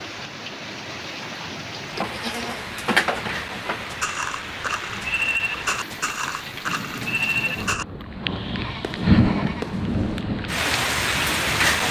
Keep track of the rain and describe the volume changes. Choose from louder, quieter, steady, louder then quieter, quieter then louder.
louder.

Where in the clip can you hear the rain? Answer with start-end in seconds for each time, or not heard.
0.0-11.8.